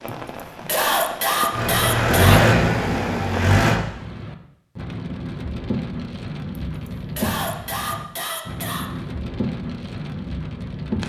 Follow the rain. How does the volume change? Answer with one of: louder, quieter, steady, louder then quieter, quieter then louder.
steady.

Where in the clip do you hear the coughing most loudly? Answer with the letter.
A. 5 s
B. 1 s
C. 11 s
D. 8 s
B.